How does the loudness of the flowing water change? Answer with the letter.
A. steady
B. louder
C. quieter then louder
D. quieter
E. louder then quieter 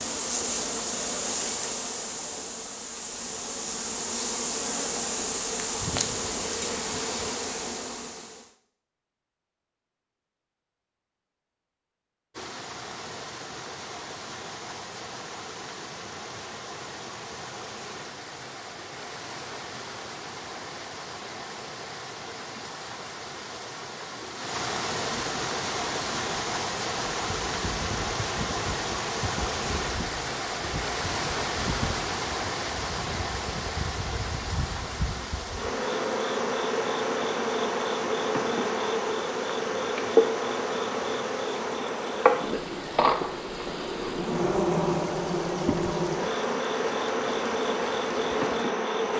E.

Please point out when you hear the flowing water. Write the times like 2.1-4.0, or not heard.
12.3-49.1.